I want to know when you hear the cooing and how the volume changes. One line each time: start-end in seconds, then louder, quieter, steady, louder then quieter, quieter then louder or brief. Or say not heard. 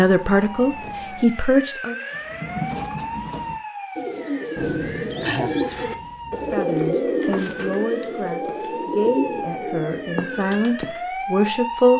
2.1-11.1 louder then quieter.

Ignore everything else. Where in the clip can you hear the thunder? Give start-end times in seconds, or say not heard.
4.5-6.5.